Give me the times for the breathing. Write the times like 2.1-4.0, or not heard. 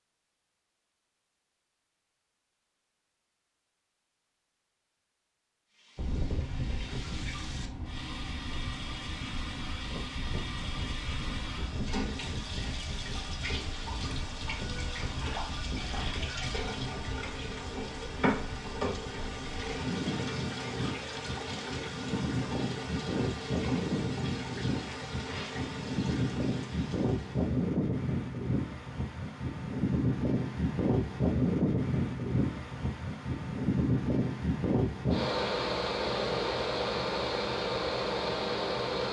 not heard.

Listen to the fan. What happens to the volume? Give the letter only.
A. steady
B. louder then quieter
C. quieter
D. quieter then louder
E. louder
E.